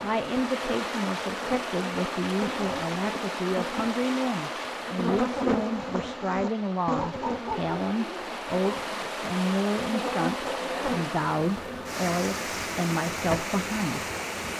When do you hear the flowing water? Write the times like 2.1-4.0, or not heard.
0.0-14.5.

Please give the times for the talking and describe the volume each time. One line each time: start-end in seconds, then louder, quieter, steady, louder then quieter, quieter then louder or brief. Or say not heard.
0.0-14.1 steady.